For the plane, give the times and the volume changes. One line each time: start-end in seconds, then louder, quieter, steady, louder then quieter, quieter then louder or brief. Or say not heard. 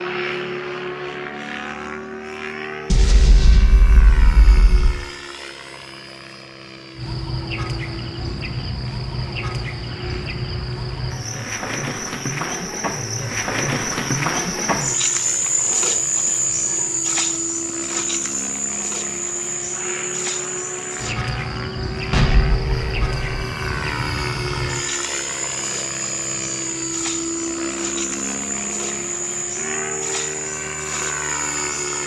0.0-32.0 quieter then louder.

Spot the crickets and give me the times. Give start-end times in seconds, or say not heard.
7.0-32.0.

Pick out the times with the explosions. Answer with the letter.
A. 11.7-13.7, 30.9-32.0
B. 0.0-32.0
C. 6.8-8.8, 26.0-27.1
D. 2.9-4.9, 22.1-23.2
D.